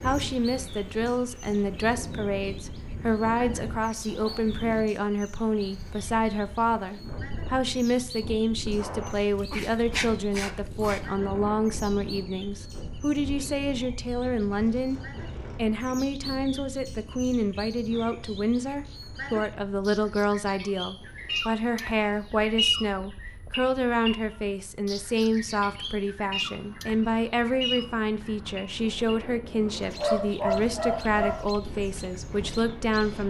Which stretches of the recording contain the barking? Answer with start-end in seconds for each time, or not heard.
9.5-11.0, 29.6-31.5.